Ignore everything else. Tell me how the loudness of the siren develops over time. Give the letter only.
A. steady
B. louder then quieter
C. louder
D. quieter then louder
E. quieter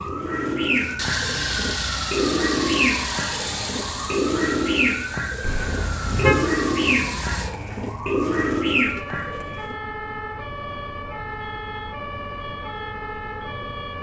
A.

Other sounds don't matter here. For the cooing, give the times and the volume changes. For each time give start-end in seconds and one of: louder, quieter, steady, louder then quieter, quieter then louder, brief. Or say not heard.
0.0-9.8 steady.